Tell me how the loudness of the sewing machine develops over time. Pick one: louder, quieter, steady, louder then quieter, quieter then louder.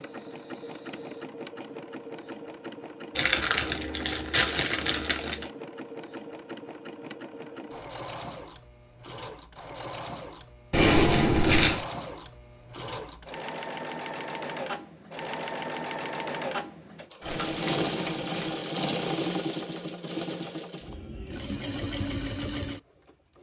louder.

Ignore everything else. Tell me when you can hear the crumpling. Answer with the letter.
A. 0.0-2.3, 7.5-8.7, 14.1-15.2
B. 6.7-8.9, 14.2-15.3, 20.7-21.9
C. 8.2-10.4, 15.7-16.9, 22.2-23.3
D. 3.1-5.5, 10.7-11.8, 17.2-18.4
D.